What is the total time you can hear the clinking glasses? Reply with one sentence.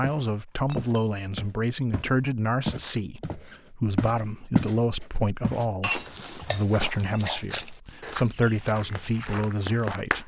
The clinking glasses can be heard for 2 seconds in total.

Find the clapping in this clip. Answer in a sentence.
The clapping can be heard from 8.4 to 10.2 s.